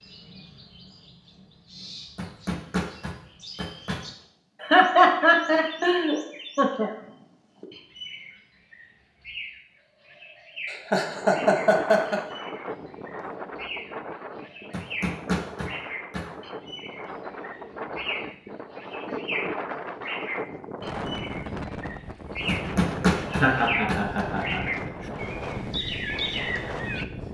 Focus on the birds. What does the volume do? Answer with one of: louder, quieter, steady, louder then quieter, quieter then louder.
louder.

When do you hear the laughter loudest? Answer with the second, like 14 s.
5 s.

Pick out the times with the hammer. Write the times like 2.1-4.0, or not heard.
2.1-4.0, 14.7-16.2, 22.4-24.2.